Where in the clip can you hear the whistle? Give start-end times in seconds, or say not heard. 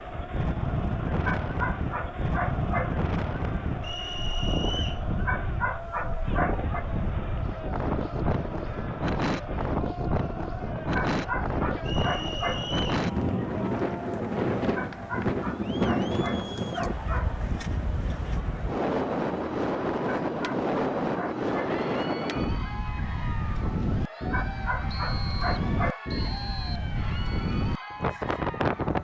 3.8-5.0, 11.8-13.0, 24.9-26.9.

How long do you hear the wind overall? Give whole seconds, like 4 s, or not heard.
29 s.